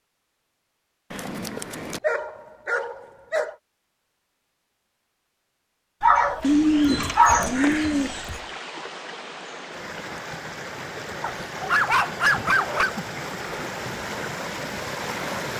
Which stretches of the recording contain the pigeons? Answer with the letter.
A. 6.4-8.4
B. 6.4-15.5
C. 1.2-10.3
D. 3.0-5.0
A.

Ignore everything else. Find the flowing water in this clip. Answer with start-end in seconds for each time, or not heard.
6.4-15.5.